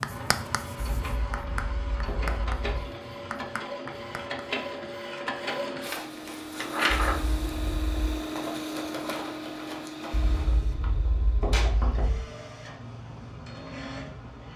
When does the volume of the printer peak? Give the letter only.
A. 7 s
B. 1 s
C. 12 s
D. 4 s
A.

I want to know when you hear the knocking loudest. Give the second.
12 s.